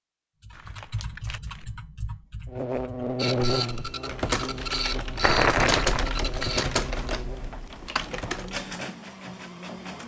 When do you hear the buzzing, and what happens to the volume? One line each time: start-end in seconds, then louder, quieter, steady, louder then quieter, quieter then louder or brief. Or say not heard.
2.5-10.0 quieter.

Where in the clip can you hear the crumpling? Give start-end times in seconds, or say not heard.
0.5-1.6, 5.2-6.2.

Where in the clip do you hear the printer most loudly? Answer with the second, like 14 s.
5 s.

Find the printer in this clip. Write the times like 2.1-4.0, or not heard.
3.1-10.0.